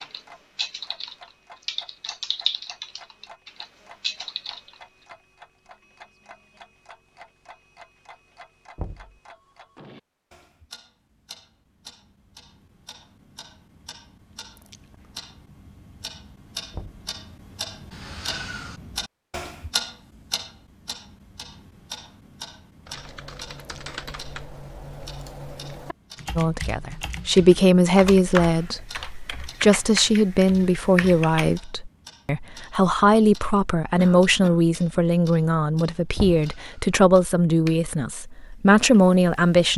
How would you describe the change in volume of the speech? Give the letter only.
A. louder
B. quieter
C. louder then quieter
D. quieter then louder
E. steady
E.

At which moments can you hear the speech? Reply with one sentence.
You can hear the speech from 26.4 to 39.7 s.